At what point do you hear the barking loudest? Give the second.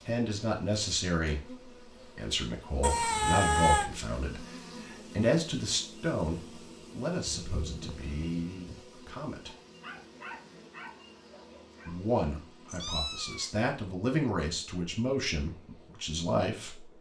10 s.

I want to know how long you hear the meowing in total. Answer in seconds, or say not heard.
3 s.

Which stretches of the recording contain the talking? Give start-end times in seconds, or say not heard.
0.1-9.6, 11.8-16.9.